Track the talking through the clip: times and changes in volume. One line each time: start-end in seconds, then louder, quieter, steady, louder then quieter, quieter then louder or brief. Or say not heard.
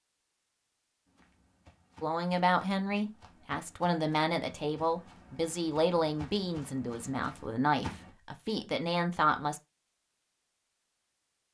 2.0-9.6 steady.